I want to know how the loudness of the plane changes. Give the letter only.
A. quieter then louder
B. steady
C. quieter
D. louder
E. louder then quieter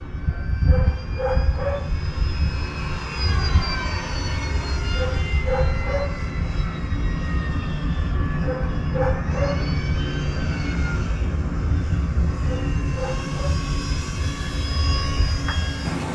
B.